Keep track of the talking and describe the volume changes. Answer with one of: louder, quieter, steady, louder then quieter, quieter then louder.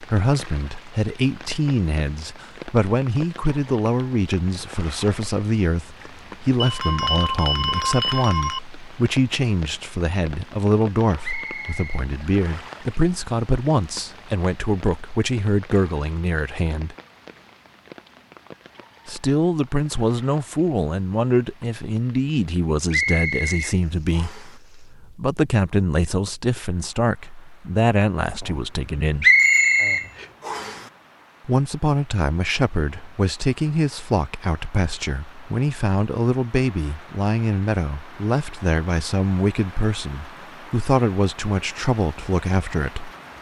steady.